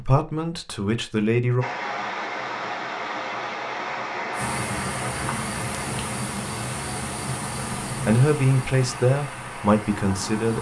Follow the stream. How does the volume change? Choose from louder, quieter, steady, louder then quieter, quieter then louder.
quieter.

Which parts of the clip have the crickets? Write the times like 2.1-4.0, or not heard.
4.3-10.5.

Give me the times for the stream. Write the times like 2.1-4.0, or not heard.
1.6-10.5.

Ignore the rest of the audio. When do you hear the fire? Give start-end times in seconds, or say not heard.
not heard.